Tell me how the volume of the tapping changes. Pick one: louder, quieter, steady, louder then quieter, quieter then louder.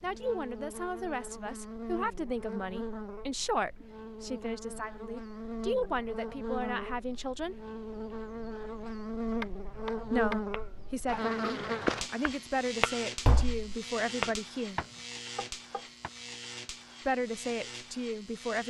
louder then quieter.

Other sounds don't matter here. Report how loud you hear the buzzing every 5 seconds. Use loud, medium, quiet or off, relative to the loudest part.
medium, loud, loud, medium.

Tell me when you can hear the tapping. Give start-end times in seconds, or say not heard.
9.4-16.1.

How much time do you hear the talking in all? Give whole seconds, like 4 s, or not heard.
14 s.